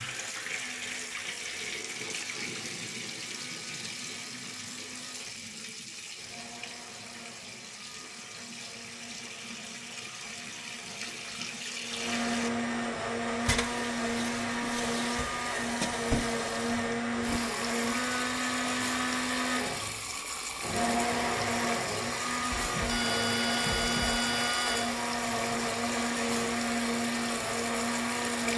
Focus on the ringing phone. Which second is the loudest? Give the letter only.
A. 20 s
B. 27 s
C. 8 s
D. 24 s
D.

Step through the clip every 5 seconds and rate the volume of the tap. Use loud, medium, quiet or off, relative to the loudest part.
loud, medium, loud, loud, loud, loud.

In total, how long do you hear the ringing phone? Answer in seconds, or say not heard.
2 s.